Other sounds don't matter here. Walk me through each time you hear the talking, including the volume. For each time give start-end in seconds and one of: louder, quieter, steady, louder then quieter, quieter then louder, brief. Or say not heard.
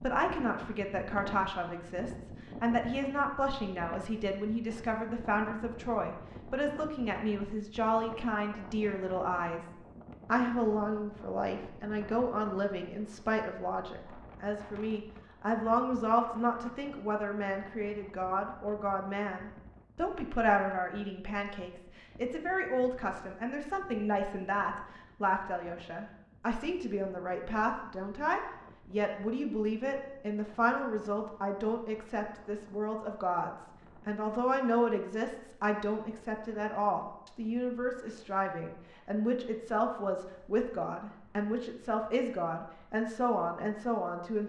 0.0-44.4 steady.